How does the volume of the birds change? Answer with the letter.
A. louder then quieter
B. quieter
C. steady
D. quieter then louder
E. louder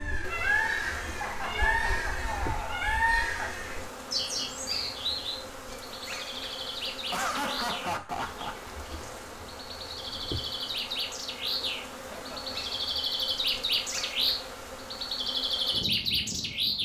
D.